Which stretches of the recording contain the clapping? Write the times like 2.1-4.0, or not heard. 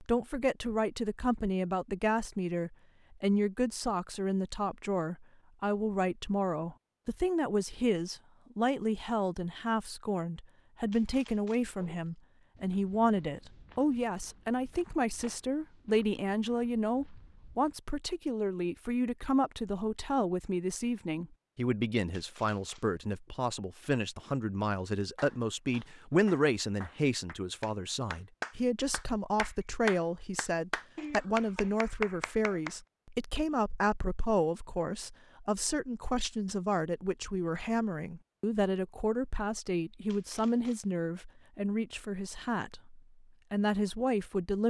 25.1-32.8.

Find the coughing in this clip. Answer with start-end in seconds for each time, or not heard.
not heard.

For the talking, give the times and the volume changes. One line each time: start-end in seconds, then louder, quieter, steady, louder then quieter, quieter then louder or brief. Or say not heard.
0.0-44.6 steady.